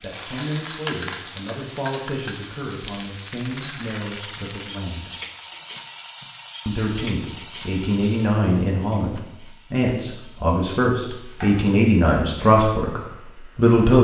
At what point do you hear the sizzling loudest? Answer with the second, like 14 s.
1 s.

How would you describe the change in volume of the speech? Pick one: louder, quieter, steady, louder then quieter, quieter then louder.
louder.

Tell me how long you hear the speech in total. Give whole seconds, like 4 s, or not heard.
12 s.